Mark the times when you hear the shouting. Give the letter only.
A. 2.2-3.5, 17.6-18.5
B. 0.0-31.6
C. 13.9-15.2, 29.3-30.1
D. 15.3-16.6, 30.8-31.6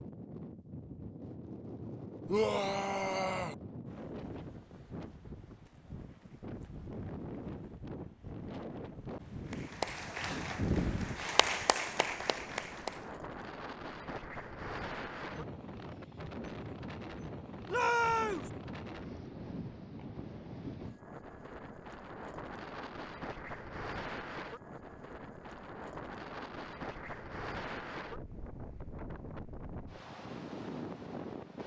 A.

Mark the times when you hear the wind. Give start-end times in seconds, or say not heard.
0.0-31.6.